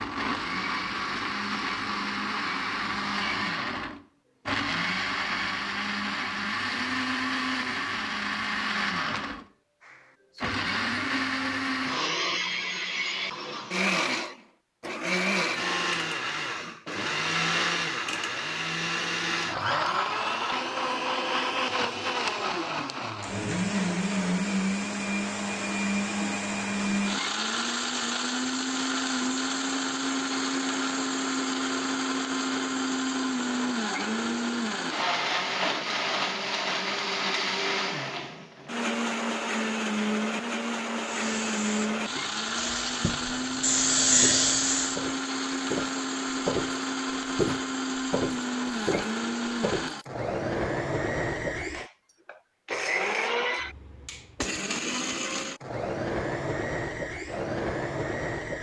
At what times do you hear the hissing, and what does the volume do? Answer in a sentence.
You can hear the hissing from 41.0 to 45.0 s, getting louder.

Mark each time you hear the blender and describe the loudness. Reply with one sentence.
The blender can be heard from 0.0 to 58.5 s, at a steady volume.